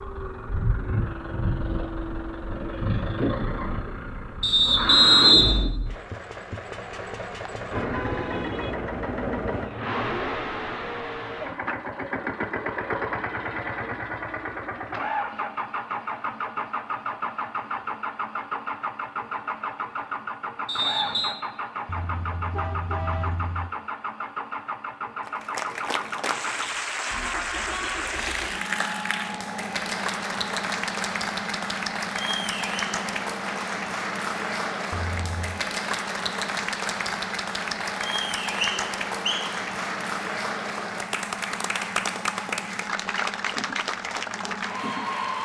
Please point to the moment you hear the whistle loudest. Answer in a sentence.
The volume of the whistle peaks at 5 seconds.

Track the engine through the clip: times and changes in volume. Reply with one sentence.
You can hear the engine from 0.0 to 45.4 s, getting quieter.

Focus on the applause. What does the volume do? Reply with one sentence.
The volume of the applause stays about the same.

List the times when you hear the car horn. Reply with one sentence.
You can hear the car horn from 7.5 to 8.7 s, from 21.9 to 23.7 s and from 34.9 to 35.6 s.